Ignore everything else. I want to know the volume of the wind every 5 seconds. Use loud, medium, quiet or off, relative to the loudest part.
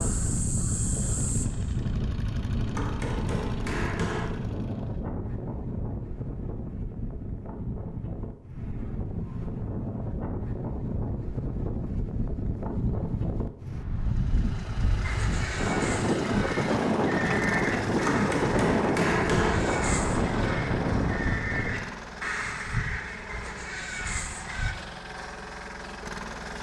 medium, medium, medium, loud, loud, off.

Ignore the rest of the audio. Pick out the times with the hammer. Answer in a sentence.
The hammer can be heard from 2.8 to 4.3 s and from 18.1 to 19.6 s.